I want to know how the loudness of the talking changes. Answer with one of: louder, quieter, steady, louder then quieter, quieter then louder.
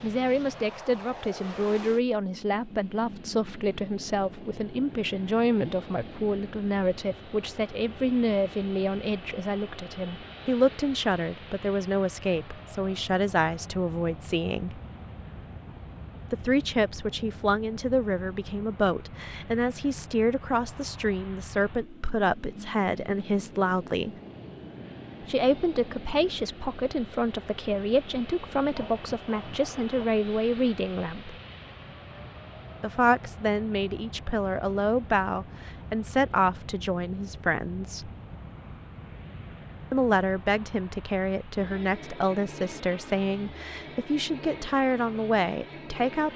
steady.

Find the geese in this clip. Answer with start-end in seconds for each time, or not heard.
not heard.